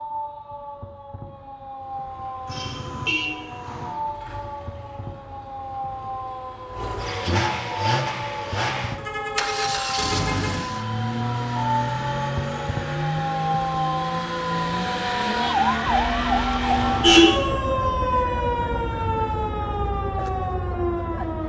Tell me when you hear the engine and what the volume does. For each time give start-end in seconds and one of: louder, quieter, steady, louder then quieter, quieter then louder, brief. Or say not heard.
1.6-17.2 louder.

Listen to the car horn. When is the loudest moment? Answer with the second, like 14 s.
17 s.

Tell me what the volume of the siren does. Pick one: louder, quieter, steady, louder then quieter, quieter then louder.
louder.